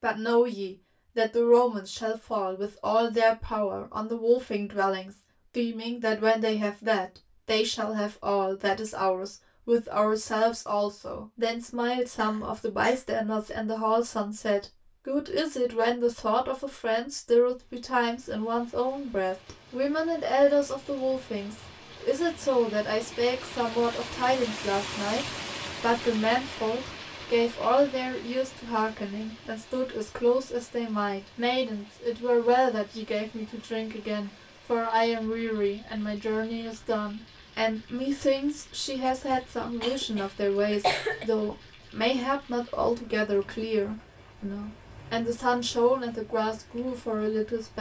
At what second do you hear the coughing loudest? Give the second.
41 s.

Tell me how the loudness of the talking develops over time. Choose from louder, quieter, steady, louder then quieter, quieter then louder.
steady.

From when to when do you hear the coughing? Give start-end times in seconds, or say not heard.
12.2-13.0, 39.2-41.2.